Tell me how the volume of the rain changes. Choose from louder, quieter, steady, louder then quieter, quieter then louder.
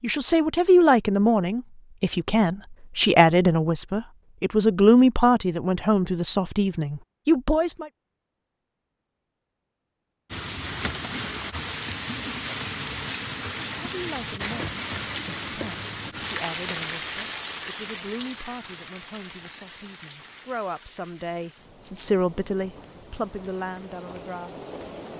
quieter.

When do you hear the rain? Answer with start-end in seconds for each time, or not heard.
10.3-25.1.